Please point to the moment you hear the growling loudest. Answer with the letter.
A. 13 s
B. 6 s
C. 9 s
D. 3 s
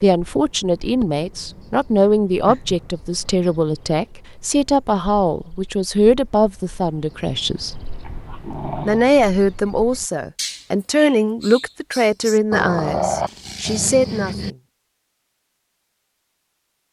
A.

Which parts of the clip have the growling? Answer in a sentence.
You can hear the growling from 2.5 to 3.5 s, from 8.1 to 9.1 s and from 12.5 to 14.6 s.